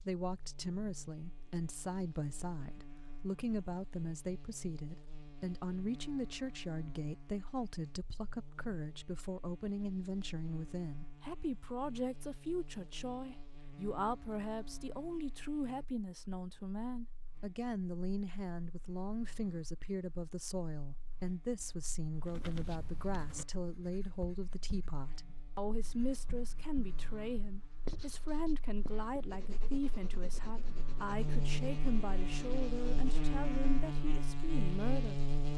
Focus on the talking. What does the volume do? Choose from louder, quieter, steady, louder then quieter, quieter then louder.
steady.